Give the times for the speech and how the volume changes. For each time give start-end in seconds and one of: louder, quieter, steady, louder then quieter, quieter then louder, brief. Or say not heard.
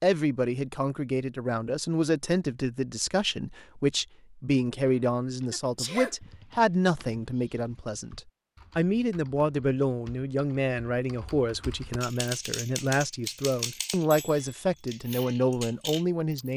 0.0-16.5 steady.